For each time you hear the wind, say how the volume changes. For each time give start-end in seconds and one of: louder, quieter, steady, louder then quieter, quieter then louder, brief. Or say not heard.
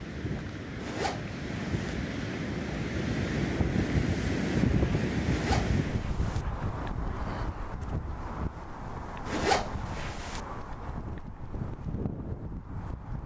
0.0-13.2 louder then quieter.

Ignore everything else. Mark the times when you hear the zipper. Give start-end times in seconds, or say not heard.
0.8-1.9, 5.2-6.5, 9.2-10.4.